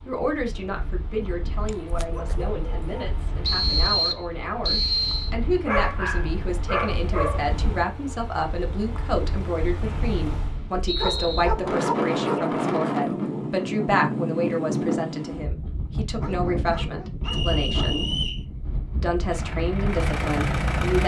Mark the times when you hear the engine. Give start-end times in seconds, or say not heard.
0.0-10.6, 19.2-21.0.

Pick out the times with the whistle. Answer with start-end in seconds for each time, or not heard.
3.4-5.3, 9.8-11.4, 17.2-18.4.